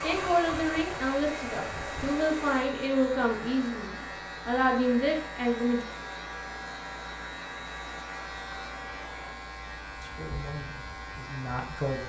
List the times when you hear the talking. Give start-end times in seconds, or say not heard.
0.0-5.8, 10.0-12.0.